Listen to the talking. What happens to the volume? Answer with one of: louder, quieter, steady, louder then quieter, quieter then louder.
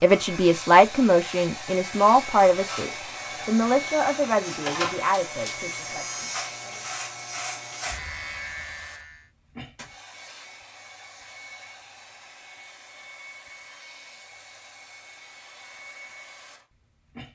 quieter.